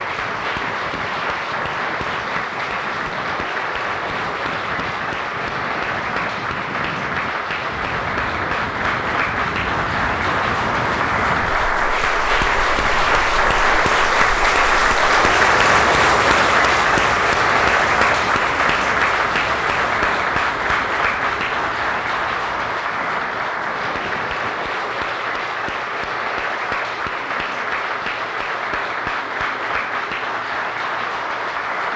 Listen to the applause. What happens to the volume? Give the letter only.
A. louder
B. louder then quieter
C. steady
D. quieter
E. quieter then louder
B.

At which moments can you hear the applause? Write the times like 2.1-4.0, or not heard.
0.0-31.9.